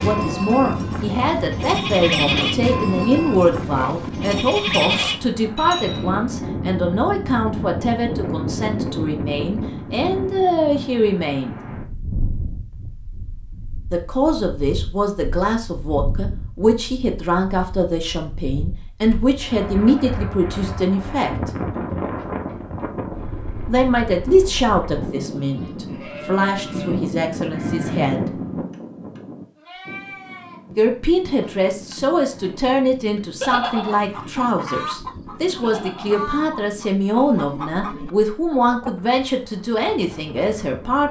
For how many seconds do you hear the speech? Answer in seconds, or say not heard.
34 s.